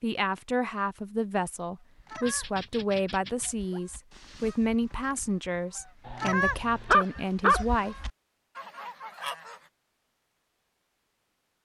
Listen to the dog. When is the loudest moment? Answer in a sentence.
The volume of the dog peaks at 7 seconds.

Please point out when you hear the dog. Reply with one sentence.
You can hear the dog from 2.2 to 3.8 s and from 6.0 to 7.6 s.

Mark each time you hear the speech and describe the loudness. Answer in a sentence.
You can hear the speech from 0.0 to 8.0 s, at a steady volume.